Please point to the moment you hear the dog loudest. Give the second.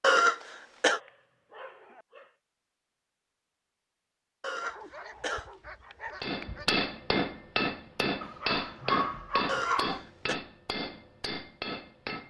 9 s.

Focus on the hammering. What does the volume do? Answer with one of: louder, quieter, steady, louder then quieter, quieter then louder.
quieter.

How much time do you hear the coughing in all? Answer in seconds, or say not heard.
4 s.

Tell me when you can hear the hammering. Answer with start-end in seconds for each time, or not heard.
6.2-12.2.